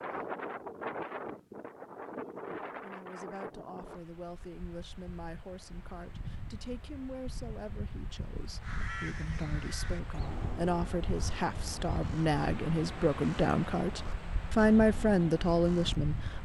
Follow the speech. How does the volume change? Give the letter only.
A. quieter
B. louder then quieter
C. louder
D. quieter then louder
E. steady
C.